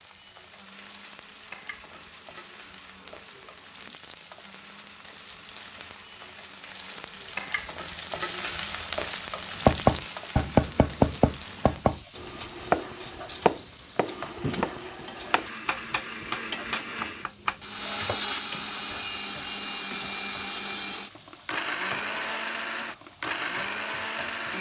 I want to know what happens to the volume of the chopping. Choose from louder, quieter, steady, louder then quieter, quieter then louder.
quieter.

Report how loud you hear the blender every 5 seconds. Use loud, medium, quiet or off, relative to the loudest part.
quiet, quiet, medium, loud, loud.